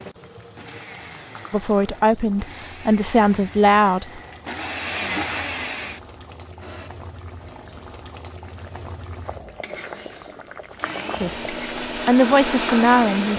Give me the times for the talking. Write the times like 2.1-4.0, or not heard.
1.5-4.2, 11.2-13.3.